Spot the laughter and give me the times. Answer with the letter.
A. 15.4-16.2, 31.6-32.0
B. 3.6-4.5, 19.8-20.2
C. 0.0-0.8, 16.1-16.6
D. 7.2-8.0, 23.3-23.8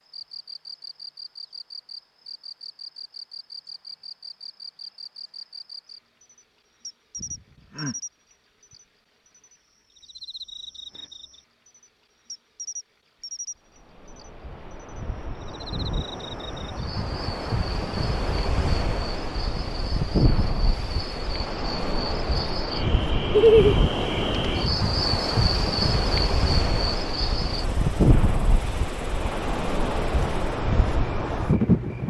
D.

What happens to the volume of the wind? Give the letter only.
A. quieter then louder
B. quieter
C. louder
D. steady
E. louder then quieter
C.